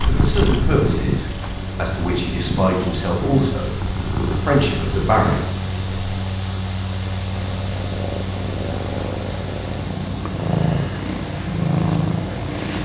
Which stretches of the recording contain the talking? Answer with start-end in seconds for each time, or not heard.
0.1-5.3.